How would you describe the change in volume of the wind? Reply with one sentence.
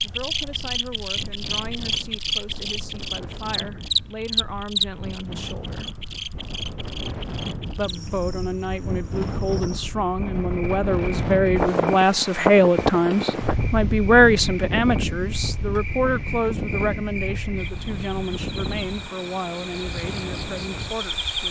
The volume of the wind goes up, then down.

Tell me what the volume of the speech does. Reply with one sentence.
The loudness of the speech goes up, then down.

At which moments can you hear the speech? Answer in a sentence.
The speech can be heard from 0.0 to 5.9 s and from 7.8 to 21.4 s.